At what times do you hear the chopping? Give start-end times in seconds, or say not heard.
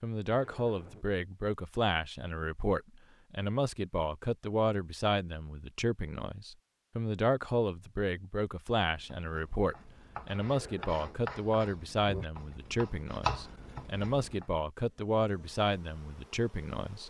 8.9-14.4.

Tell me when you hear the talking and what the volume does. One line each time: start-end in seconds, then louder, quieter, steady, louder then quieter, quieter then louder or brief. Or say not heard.
0.0-17.0 steady.